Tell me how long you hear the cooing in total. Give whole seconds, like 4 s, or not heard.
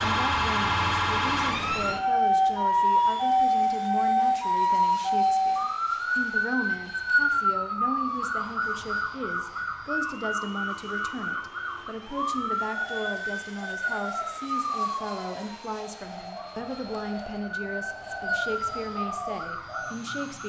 7 s.